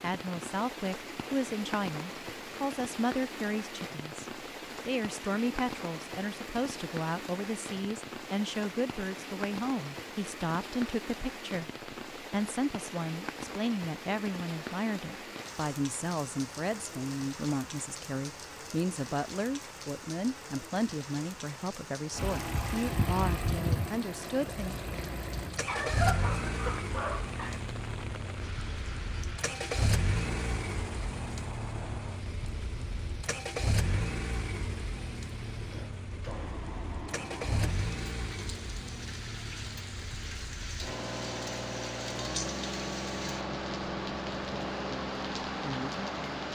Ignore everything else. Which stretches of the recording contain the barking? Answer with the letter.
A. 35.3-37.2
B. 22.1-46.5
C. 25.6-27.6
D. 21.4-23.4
C.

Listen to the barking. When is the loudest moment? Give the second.
26 s.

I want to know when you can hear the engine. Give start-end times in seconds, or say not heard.
22.1-46.5.